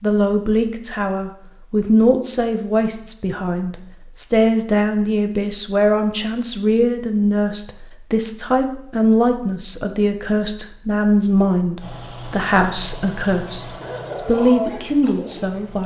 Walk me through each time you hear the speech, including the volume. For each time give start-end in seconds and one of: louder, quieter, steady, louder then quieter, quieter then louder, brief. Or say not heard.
0.0-15.8 steady.